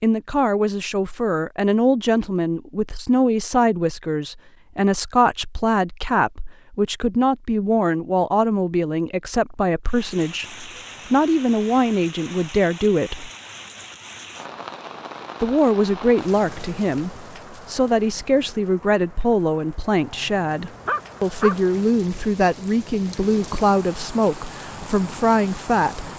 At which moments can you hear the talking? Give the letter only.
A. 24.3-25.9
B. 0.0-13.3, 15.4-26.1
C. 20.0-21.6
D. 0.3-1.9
B.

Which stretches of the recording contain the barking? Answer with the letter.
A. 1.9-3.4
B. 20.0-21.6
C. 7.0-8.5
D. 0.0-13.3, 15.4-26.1
B.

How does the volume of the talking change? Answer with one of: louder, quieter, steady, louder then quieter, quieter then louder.
steady.